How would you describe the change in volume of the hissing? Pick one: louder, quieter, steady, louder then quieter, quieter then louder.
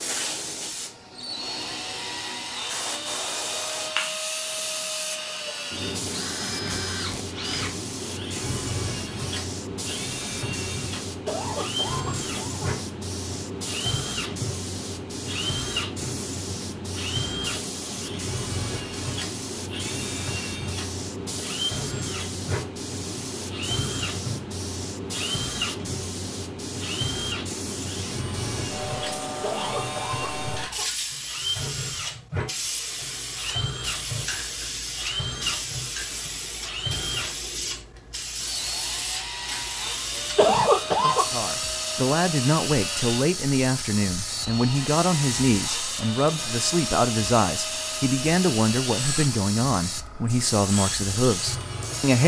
steady.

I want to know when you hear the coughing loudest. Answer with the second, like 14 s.
41 s.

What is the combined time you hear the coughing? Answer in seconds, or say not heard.
4 s.